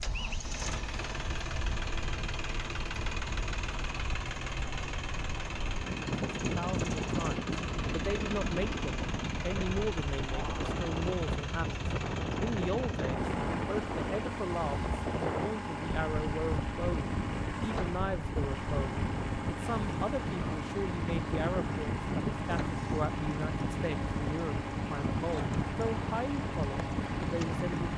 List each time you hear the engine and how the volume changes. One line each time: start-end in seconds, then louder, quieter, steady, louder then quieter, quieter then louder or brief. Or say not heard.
0.0-27.9 steady.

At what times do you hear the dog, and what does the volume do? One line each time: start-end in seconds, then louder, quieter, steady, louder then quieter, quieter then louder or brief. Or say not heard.
not heard.